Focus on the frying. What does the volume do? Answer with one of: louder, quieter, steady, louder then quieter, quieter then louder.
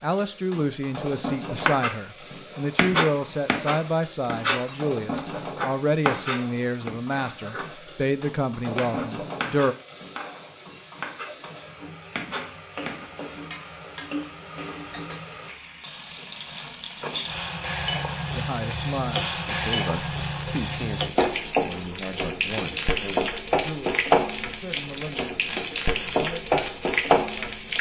louder.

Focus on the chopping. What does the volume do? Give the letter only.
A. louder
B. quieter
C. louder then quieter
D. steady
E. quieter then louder
B.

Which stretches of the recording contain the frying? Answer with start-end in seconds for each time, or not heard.
0.0-27.7.